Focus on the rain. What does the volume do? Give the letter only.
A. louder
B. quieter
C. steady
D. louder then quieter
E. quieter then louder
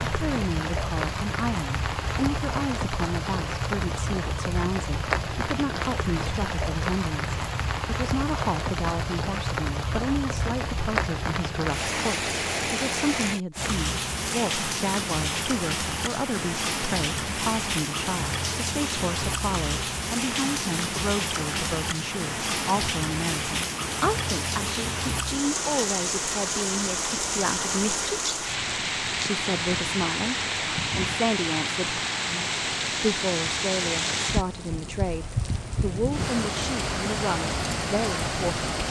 C.